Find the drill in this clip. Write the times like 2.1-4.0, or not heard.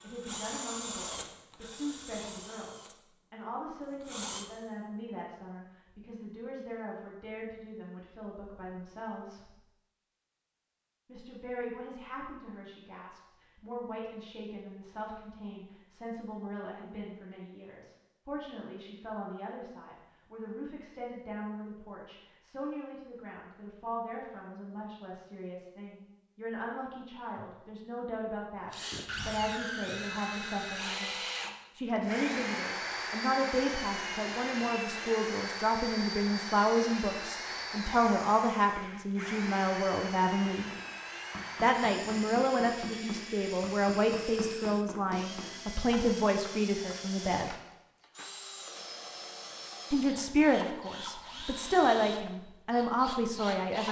0.0-4.5, 28.7-53.8.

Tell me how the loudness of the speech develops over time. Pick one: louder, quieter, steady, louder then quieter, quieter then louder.
louder.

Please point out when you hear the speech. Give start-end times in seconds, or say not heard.
0.0-9.6, 11.1-40.7, 41.6-47.5, 49.9-53.8.